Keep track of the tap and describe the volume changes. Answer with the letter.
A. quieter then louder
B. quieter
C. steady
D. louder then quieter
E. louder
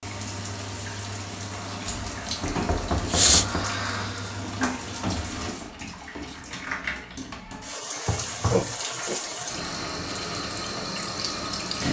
C.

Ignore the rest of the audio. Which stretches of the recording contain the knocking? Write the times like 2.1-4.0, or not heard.
1.9-3.7, 8.1-8.8.